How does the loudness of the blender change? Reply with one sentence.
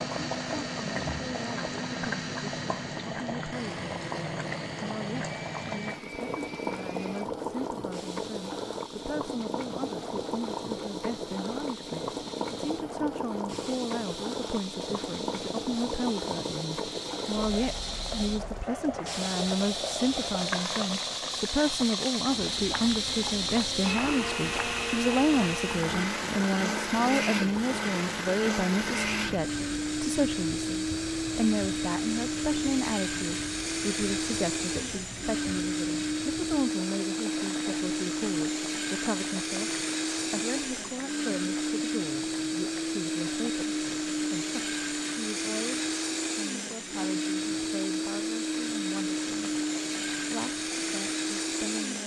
The loudness of the blender goes up.